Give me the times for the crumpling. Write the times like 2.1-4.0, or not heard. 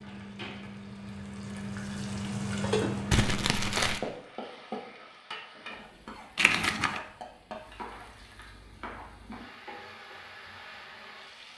3.1-4.0, 6.3-7.0.